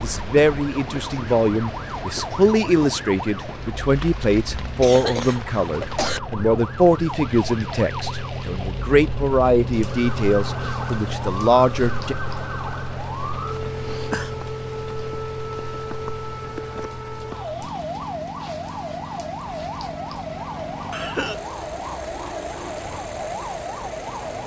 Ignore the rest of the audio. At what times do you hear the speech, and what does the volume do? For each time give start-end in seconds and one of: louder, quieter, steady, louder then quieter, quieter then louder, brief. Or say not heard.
0.0-12.2 steady.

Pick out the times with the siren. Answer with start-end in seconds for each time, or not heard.
0.0-24.4.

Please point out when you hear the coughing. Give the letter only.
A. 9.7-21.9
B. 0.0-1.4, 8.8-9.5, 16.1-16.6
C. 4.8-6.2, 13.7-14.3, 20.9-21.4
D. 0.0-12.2
C.